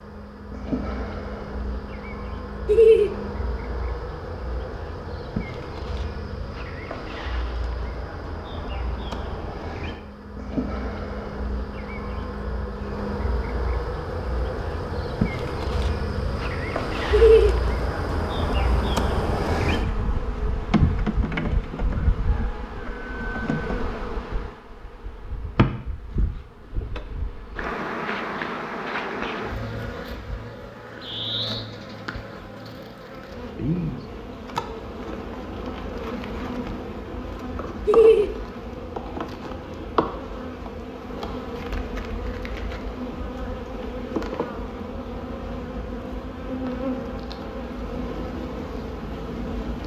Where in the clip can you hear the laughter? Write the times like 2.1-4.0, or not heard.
2.6-3.1, 17.1-17.6, 37.9-38.3.